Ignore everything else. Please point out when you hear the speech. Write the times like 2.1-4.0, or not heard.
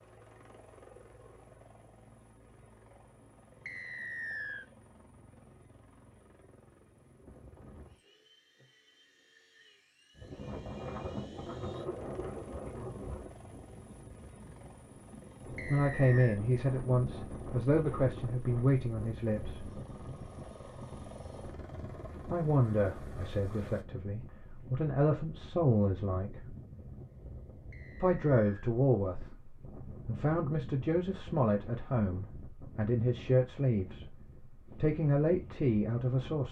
15.7-19.8, 22.2-26.6, 28.0-36.4.